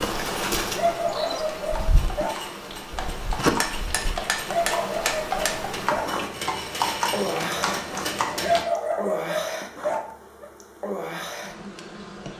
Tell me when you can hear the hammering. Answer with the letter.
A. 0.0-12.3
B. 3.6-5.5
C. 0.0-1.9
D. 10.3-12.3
B.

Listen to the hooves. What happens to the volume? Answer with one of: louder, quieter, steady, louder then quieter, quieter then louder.
louder.